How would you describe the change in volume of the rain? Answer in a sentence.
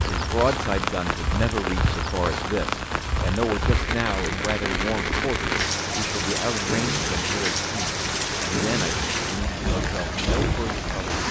The volume of the rain stays about the same.